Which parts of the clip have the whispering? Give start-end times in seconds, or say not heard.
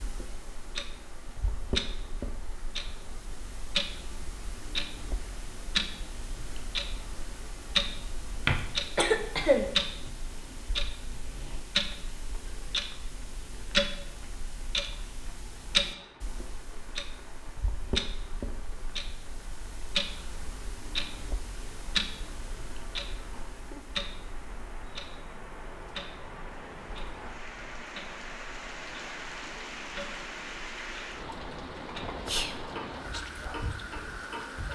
32.2-34.7.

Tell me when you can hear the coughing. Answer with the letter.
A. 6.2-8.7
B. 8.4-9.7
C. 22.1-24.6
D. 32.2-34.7
B.